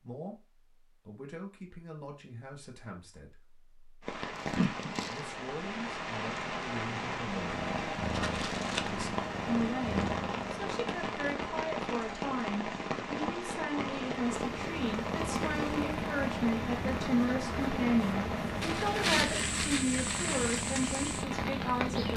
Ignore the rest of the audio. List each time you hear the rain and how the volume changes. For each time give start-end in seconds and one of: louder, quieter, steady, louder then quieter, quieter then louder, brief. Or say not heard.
4.0-22.1 steady.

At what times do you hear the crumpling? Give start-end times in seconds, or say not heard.
4.3-5.3, 8.1-8.9, 18.6-20.6.